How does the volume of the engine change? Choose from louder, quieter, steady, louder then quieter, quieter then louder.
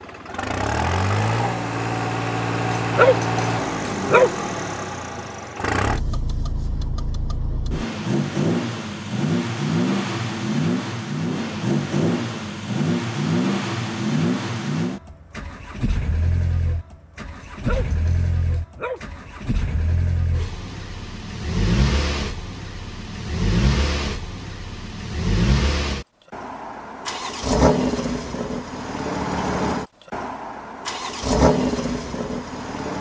steady.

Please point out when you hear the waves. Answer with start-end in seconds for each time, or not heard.
not heard.